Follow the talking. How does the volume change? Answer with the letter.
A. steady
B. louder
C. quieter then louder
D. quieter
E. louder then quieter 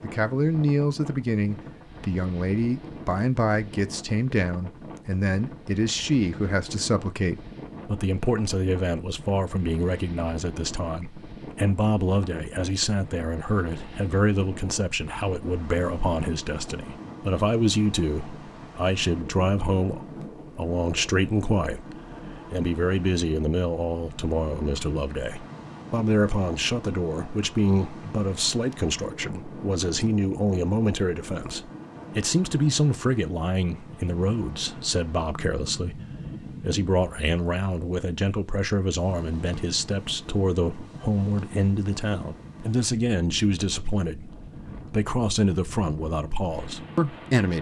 A.